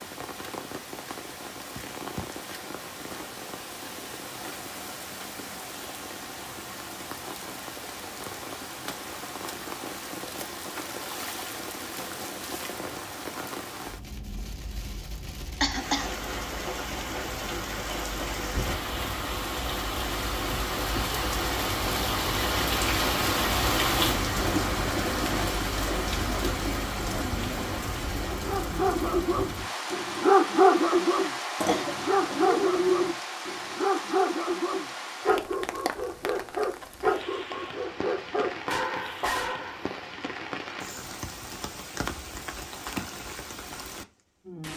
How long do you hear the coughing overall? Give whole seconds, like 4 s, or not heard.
2 s.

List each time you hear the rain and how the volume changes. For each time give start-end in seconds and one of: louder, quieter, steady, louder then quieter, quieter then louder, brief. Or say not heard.
0.0-44.7 louder then quieter.